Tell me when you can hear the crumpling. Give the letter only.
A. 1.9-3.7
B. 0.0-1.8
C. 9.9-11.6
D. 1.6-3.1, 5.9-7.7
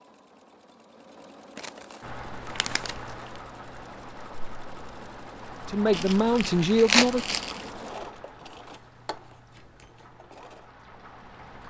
D.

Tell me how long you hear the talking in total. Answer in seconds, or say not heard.
2 s.